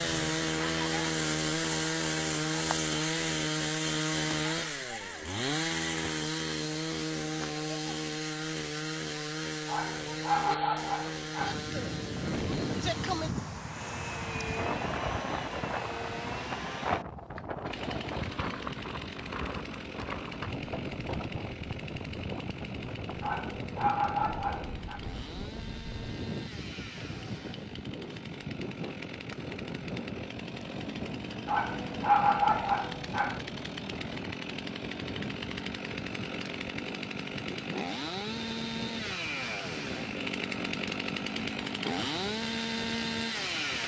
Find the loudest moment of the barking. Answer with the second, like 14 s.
32 s.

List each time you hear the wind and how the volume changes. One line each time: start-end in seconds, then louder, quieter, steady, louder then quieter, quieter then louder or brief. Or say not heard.
11.3-43.8 quieter.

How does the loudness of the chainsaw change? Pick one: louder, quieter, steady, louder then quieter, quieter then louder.
quieter then louder.